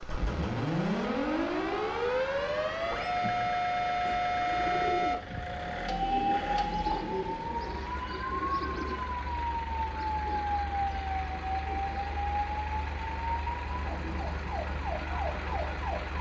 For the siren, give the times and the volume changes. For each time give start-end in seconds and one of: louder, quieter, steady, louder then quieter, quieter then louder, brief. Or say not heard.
0.0-16.1 quieter.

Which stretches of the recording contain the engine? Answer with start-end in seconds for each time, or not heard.
0.0-16.1.